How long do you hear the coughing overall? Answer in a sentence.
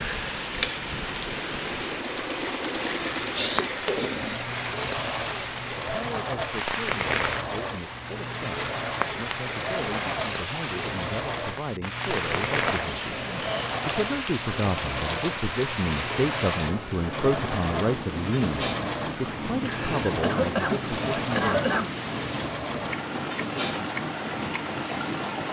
The coughing can be heard for 5 seconds in total.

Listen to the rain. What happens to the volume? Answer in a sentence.
The volume of the rain stays about the same.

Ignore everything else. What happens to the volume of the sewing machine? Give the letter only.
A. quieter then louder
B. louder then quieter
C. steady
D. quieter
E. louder
C.